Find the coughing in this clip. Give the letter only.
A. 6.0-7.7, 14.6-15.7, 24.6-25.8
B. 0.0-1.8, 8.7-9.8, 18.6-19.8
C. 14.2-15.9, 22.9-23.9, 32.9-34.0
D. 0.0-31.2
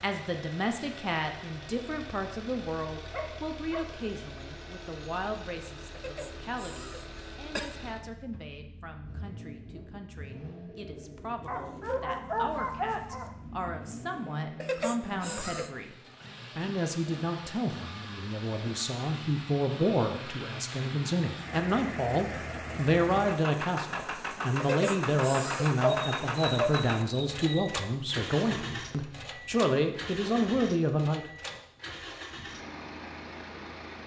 A.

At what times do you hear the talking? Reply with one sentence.
The talking can be heard from 0.0 to 31.2 s.